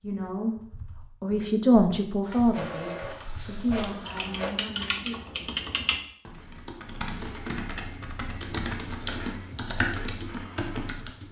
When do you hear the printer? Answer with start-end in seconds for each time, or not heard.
2.2-4.5.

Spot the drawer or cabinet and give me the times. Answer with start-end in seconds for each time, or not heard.
not heard.